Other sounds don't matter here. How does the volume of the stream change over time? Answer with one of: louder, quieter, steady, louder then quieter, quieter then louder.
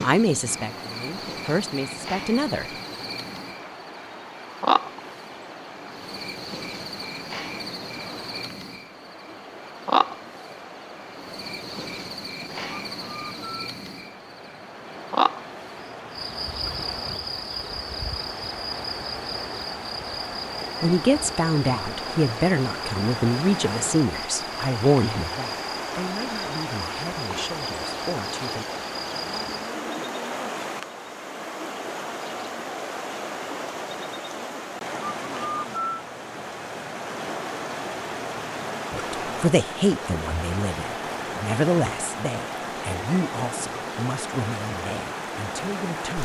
louder.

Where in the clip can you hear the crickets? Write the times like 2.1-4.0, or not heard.
0.0-29.8.